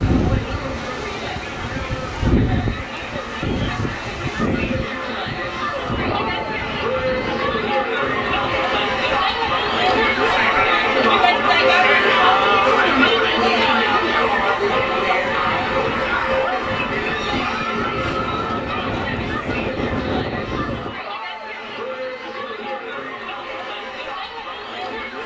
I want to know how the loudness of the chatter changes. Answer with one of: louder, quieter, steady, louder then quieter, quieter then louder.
louder then quieter.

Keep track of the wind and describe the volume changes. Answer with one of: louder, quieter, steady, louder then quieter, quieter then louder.
quieter then louder.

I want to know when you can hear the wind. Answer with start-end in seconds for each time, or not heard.
0.0-21.0.